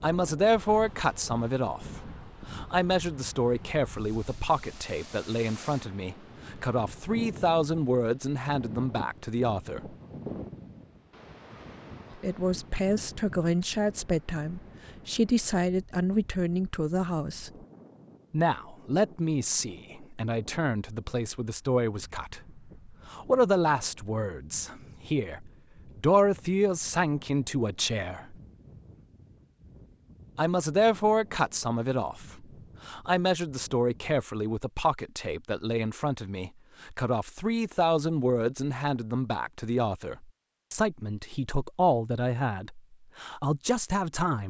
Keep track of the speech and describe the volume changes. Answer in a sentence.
The loudness of the speech stays about the same.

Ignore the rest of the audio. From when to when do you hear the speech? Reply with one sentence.
The speech can be heard from 0.0 to 9.9 s, from 12.2 to 17.5 s, from 18.3 to 28.4 s and from 30.4 to 44.4 s.